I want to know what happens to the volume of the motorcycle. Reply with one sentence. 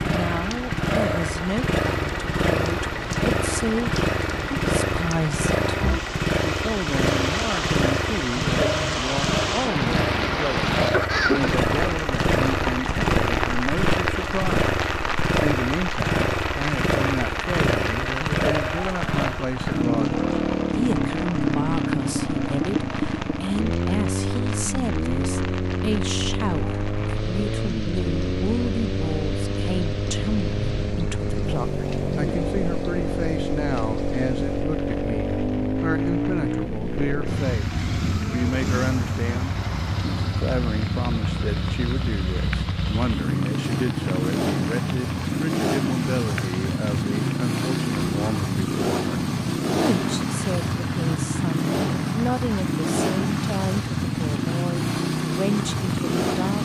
The loudness of the motorcycle stays about the same.